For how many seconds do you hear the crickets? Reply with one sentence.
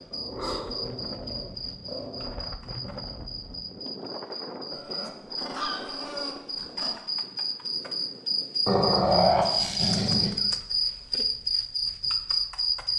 The crickets can be heard for 13 seconds in total.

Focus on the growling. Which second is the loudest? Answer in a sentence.
The loudest moment of the growling is at 9 seconds.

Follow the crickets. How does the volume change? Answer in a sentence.
The volume of the crickets goes up.